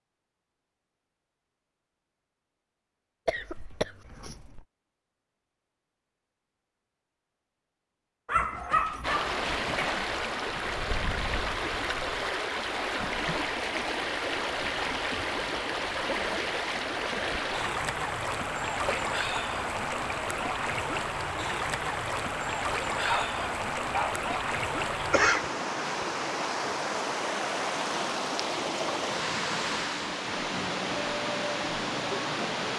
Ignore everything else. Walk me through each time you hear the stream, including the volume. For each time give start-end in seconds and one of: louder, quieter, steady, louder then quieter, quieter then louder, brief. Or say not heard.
9.0-32.7 steady.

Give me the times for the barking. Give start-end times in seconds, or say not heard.
8.2-10.0, 23.1-24.2.